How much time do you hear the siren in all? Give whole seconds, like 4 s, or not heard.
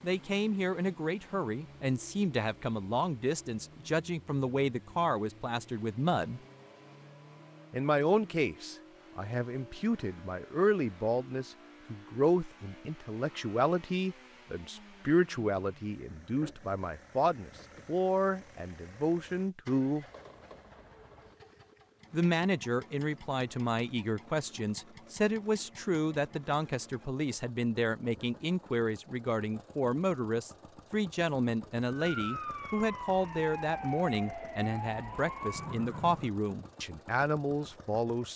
4 s.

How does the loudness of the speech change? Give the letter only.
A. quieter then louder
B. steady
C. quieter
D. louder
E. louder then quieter
B.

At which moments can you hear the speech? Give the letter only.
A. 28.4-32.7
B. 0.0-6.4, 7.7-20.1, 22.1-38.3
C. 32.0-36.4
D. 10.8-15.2
B.